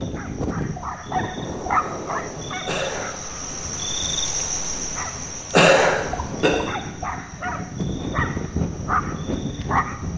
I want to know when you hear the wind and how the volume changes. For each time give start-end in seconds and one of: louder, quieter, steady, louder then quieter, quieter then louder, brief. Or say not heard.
0.0-10.1 quieter then louder.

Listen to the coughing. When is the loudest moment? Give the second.
6 s.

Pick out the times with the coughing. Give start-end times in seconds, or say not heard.
2.6-3.1, 5.5-6.5.